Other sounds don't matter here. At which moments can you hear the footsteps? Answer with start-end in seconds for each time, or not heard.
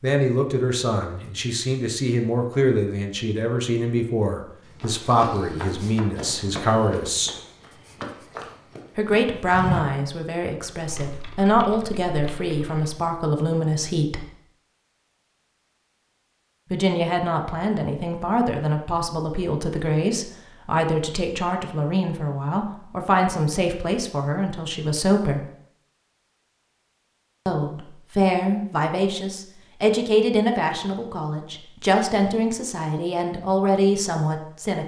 4.8-9.8.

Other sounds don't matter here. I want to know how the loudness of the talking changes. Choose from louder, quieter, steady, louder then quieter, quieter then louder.
steady.